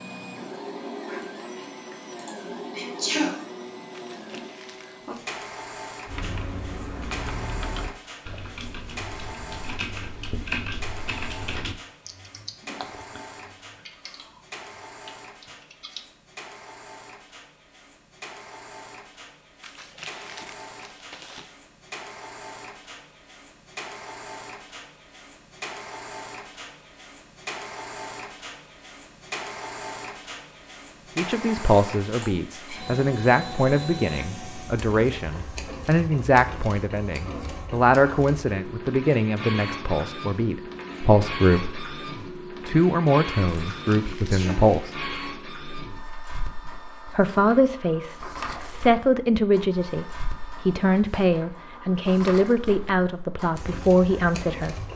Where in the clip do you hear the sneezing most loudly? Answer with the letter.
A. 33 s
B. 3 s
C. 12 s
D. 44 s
B.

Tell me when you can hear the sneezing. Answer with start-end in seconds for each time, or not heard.
2.1-3.4, 32.1-32.8, 43.5-44.6.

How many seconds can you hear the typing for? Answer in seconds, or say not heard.
10 s.